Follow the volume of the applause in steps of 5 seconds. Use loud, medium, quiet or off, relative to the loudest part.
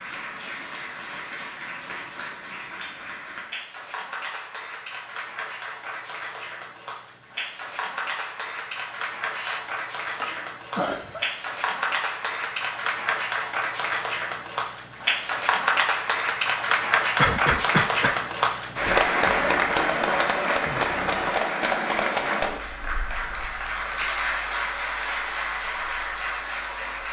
quiet, medium, medium, loud, loud, medium.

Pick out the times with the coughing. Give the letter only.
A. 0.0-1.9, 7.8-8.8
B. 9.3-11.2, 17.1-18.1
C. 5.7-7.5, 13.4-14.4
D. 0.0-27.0
B.